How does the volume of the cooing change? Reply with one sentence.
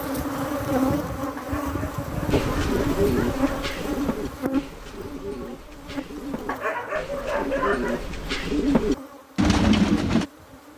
The volume of the cooing goes down, then up.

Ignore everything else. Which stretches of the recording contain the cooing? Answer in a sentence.
The cooing can be heard from 2.3 to 10.2 s.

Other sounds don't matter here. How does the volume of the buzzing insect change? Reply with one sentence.
The loudness of the buzzing insect goes down.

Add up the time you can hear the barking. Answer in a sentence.
The barking can be heard for 4 seconds in total.